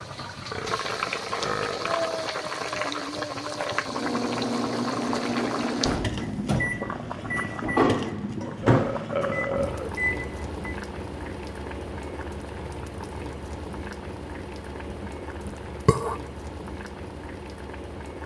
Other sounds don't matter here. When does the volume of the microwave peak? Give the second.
8 s.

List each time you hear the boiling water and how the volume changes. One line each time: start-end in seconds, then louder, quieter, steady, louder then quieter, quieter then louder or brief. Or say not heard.
0.0-18.2 quieter.